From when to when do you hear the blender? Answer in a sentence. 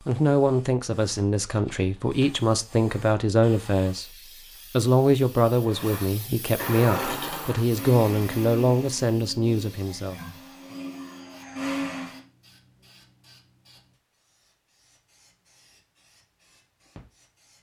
You can hear the blender from 5.6 to 12.2 s.